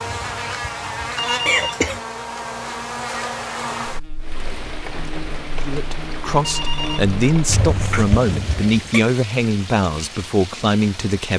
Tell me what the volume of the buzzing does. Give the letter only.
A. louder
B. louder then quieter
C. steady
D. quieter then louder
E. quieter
E.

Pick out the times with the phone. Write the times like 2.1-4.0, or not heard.
1.1-1.9, 6.4-7.1.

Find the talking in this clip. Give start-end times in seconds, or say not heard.
5.6-11.3.